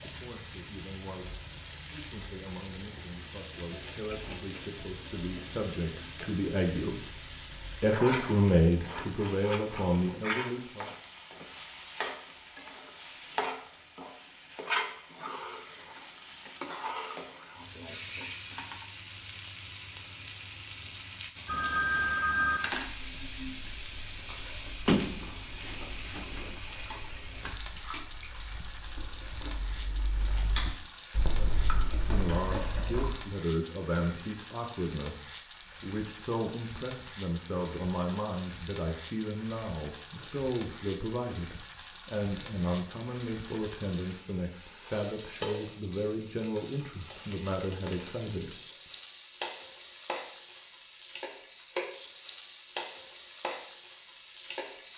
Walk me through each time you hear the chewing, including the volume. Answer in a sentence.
You can hear the chewing from 22.9 to 33.2 s, getting louder.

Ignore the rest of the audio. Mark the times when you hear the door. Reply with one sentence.
The door can be heard from 24.9 to 26.6 s.